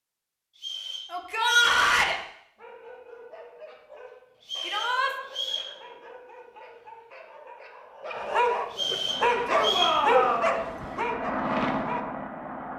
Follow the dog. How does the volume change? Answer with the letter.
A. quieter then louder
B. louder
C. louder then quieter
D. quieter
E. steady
B.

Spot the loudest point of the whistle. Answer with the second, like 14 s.
10 s.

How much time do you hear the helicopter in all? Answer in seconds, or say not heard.
4 s.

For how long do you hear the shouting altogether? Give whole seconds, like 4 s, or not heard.
3 s.